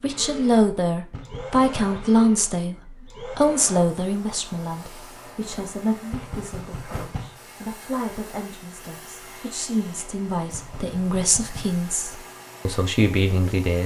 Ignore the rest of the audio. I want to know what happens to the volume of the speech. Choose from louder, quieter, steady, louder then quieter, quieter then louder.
quieter then louder.